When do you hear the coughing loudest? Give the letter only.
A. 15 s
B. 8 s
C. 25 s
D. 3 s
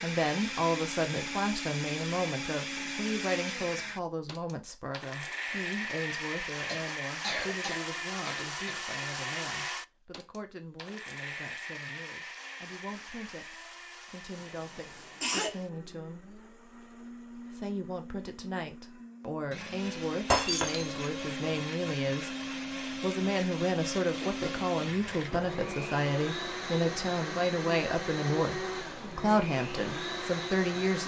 A.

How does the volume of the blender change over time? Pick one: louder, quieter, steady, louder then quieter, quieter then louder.
quieter then louder.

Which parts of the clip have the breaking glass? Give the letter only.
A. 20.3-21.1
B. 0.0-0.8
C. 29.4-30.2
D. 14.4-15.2
A.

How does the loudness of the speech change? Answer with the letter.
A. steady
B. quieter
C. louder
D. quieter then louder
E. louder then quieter
D.